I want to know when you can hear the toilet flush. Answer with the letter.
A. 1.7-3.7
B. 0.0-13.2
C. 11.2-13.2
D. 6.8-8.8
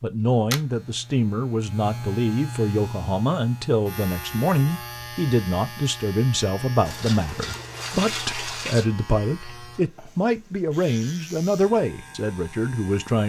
D.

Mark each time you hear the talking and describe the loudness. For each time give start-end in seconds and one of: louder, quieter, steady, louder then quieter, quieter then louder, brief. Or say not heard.
0.0-13.2 steady.